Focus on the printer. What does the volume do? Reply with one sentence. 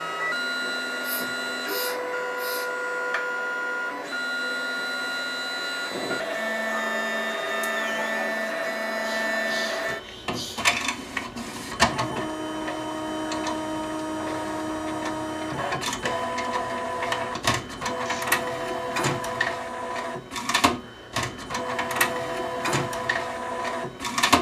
The loudness of the printer stays about the same.